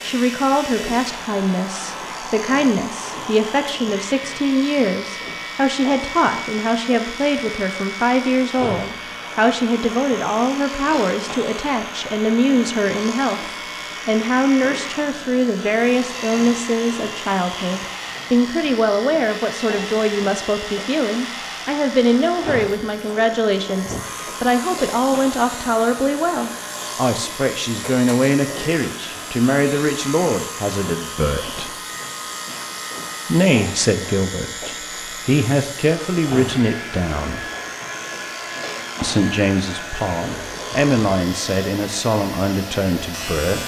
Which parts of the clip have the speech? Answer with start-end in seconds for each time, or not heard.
0.0-31.8, 33.2-37.5, 39.0-43.6.